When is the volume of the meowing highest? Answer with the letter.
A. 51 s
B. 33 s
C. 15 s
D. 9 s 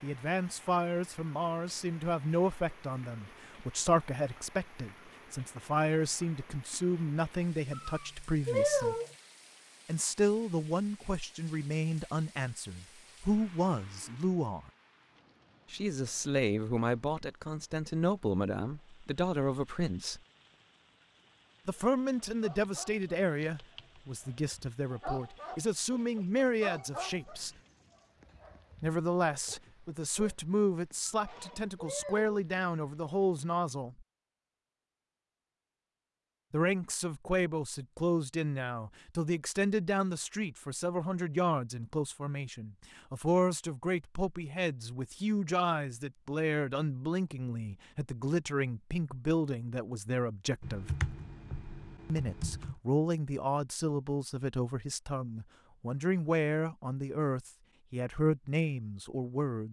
D.